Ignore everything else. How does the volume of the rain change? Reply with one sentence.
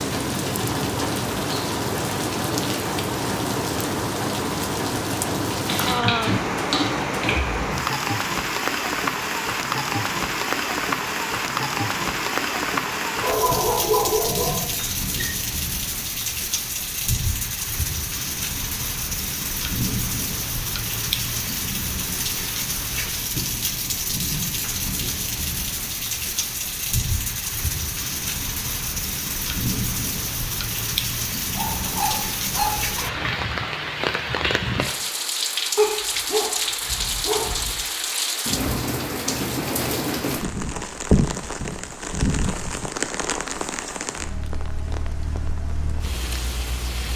The loudness of the rain stays about the same.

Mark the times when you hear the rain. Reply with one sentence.
The rain can be heard from 0.0 to 47.1 s.